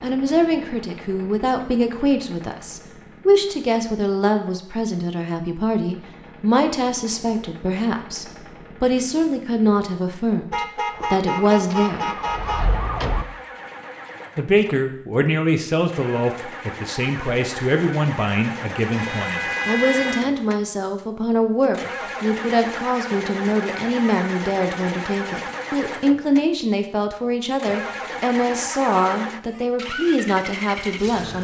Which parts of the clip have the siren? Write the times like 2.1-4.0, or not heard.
10.9-13.2.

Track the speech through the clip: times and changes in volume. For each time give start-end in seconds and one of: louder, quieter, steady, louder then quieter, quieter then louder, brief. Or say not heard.
0.0-12.2 steady
14.3-31.3 steady.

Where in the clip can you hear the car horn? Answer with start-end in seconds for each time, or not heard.
10.5-12.7, 18.9-20.2.